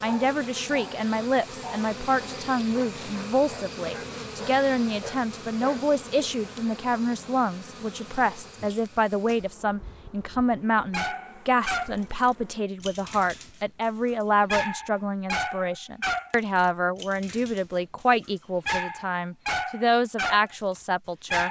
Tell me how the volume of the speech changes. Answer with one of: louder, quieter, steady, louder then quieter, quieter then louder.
steady.